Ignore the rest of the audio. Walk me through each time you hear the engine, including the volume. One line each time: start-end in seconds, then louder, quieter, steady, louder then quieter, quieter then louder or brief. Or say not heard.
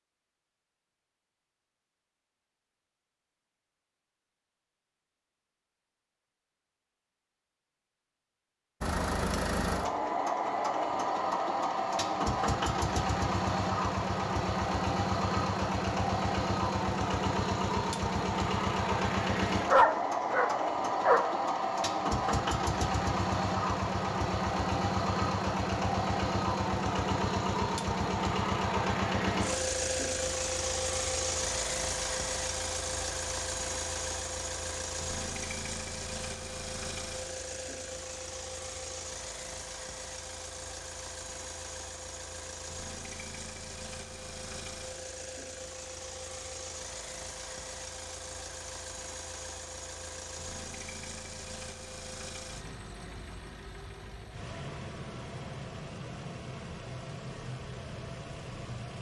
8.8-58.9 quieter.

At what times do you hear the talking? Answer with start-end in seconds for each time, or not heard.
not heard.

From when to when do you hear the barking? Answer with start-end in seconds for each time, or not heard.
19.6-21.2.